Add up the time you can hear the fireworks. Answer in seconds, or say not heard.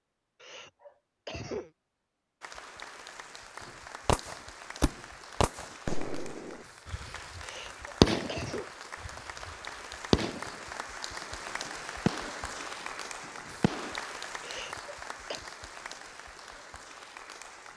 9 s.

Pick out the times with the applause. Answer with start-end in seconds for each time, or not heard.
2.4-17.7.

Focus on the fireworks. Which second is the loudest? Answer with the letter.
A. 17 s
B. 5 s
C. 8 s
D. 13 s
C.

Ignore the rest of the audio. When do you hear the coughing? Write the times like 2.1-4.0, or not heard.
0.4-1.7, 7.4-8.7, 14.4-15.4.